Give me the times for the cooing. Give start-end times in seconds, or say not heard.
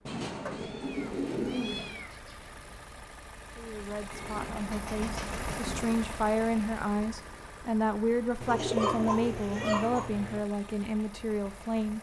0.1-2.0, 4.1-6.0, 8.4-10.1.